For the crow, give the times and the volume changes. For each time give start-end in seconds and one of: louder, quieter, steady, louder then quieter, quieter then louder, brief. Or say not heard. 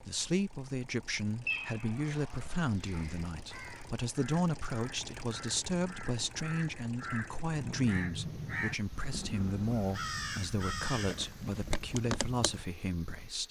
2.1-12.7 louder.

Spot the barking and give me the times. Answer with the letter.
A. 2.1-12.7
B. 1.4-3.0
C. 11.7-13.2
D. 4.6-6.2
B.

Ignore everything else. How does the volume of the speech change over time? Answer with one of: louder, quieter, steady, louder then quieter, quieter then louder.
steady.